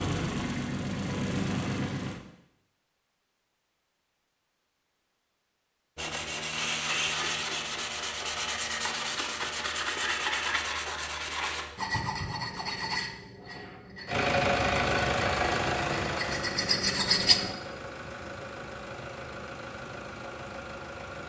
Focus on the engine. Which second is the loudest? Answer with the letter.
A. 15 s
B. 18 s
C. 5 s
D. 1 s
A.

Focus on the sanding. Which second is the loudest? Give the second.
17 s.